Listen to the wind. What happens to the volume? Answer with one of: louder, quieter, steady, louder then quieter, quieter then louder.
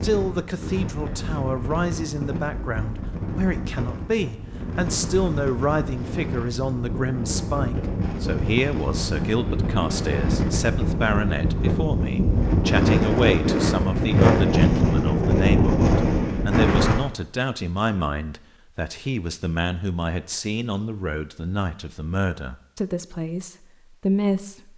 louder.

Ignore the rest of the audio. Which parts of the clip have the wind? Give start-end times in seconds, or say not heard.
0.0-16.9.